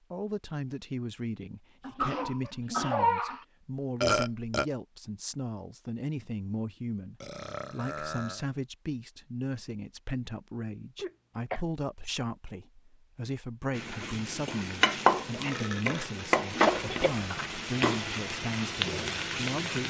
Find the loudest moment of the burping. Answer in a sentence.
The loudest moment of the burping is at 4 seconds.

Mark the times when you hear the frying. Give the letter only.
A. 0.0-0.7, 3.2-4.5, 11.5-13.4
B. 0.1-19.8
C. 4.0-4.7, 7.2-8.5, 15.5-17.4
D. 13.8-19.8
D.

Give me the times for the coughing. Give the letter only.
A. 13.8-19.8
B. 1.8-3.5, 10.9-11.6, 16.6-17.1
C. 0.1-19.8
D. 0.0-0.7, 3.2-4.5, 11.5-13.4
B.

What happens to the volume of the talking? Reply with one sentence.
The volume of the talking stays about the same.